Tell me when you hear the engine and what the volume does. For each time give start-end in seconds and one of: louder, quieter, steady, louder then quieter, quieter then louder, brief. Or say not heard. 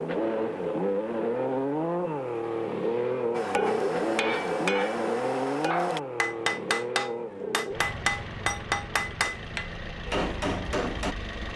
0.0-11.5 quieter.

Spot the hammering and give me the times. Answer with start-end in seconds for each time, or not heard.
3.4-11.2.